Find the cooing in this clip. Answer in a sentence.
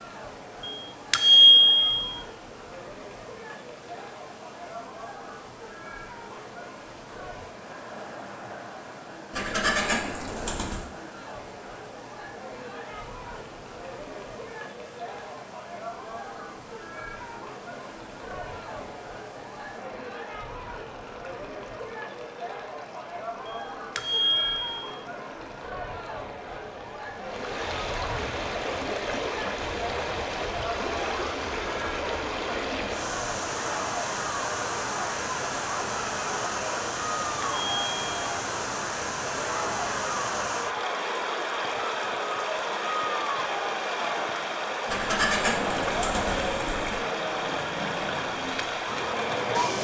The cooing can be heard from 9.3 to 10.9 s and from 44.9 to 47.0 s.